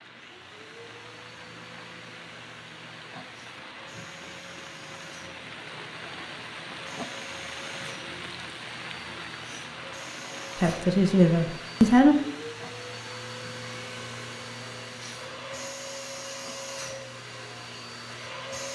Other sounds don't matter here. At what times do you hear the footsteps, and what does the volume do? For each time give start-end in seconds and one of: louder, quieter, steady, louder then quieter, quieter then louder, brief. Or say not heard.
not heard.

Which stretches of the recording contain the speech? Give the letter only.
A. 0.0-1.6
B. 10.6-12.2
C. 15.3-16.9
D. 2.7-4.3
B.